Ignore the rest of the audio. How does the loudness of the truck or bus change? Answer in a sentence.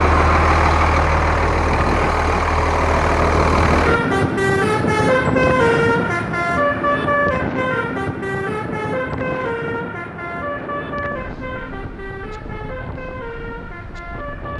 The loudness of the truck or bus goes down.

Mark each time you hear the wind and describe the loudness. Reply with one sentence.
The wind can be heard from 0.0 to 14.5 s, getting quieter.